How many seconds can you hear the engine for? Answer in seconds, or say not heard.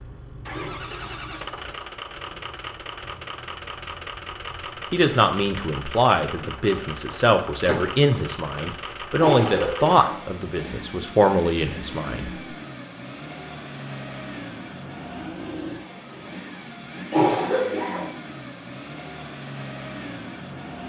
21 s.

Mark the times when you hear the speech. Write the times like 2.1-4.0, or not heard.
4.9-12.3.